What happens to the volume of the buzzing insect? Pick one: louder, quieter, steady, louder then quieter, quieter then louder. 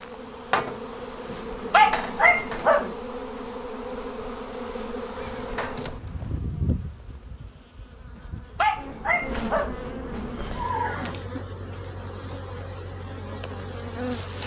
quieter.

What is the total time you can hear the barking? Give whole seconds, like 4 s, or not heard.
3 s.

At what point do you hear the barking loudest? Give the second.
2 s.